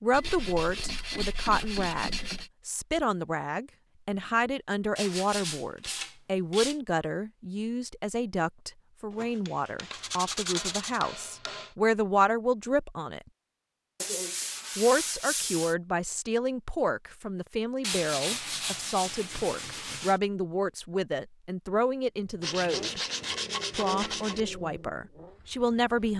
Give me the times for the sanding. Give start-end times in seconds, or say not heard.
0.1-2.5, 5.0-6.8, 9.1-11.0, 14.0-15.8, 17.8-20.2, 22.4-24.4.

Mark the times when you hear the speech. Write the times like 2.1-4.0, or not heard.
0.0-13.2, 14.8-23.0, 23.7-26.1.